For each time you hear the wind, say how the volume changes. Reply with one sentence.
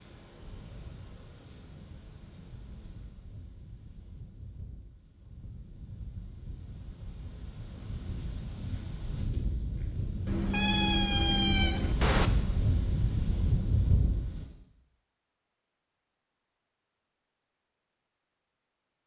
You can hear the wind from 0.0 to 14.4 s, getting louder.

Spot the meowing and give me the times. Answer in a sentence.
You can hear the meowing from 10.2 to 12.3 s.